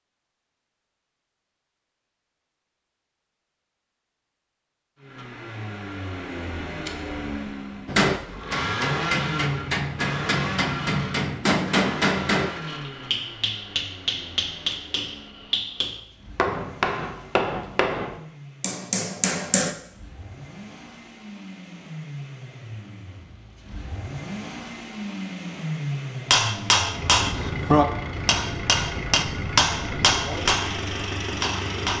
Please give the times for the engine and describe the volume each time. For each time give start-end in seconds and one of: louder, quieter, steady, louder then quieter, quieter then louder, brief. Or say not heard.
5.0-31.9 quieter then louder.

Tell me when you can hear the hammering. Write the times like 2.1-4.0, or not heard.
7.8-19.8, 26.3-31.9.